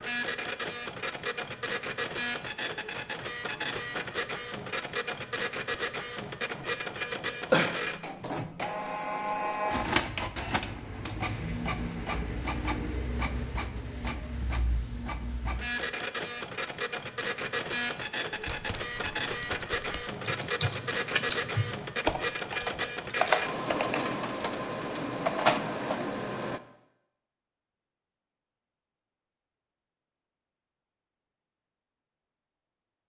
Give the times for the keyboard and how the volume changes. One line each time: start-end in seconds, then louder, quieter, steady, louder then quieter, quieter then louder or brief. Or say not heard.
18.3-24.0 louder.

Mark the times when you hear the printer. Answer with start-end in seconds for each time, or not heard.
0.0-26.6.